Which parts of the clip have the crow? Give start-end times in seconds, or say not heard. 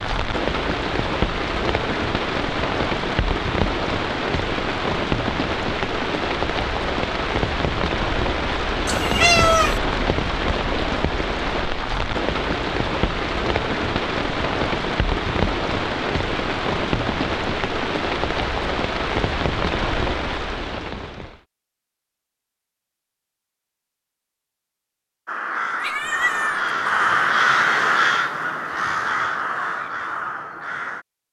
25.2-31.1.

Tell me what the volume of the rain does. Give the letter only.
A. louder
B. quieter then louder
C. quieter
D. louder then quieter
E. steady
E.